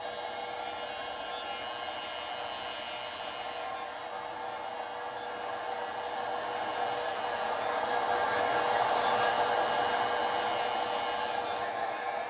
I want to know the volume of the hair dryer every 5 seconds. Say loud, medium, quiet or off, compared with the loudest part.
medium, loud, loud.